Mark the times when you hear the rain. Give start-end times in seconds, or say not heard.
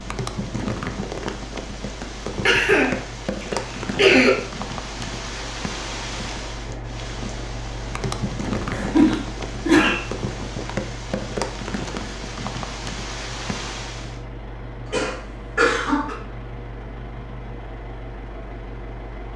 0.0-14.2.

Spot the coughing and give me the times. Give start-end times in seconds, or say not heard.
2.5-4.3, 8.7-10.0, 14.8-16.1.